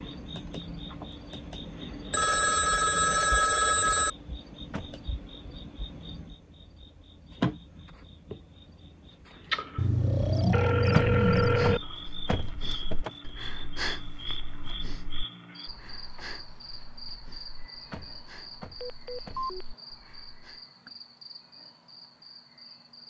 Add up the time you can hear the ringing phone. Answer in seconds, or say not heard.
5 s.